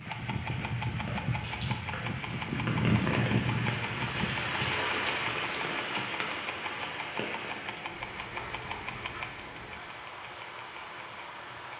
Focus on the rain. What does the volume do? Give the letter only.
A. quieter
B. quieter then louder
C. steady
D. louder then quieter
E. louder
D.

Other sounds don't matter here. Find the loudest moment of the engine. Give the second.
3 s.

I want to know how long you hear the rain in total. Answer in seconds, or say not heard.
12 s.